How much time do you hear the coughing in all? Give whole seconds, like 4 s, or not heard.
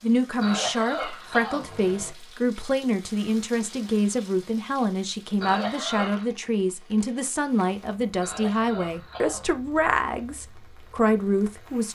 4 s.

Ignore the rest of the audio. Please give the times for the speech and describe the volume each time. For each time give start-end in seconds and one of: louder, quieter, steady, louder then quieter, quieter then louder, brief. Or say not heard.
0.0-11.9 steady.